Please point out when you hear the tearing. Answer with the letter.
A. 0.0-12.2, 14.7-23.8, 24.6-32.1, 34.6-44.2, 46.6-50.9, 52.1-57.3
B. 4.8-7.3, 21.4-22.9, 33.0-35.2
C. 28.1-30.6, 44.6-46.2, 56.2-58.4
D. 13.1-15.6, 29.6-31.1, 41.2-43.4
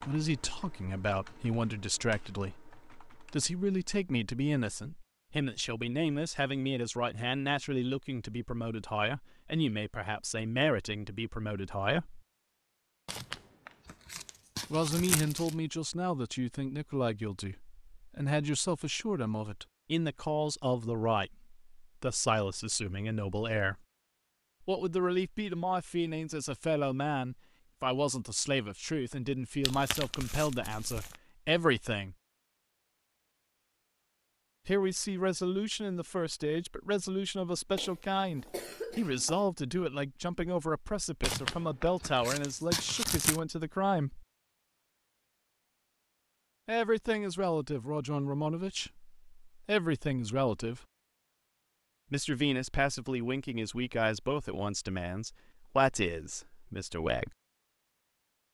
D.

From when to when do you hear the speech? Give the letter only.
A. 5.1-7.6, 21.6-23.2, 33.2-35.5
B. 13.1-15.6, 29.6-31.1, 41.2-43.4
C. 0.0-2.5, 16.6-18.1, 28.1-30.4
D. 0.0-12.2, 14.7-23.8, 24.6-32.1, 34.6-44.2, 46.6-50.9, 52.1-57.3
D.